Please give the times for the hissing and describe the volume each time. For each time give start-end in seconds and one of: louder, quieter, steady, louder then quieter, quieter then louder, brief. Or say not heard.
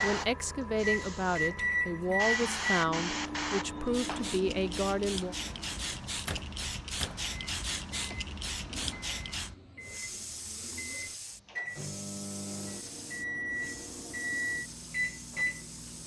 0.0-16.0 quieter.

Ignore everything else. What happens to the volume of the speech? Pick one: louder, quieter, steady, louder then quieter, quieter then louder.
steady.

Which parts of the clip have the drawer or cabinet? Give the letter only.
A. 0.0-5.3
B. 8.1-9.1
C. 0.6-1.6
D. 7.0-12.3
B.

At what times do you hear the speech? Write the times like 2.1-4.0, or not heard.
0.0-5.3.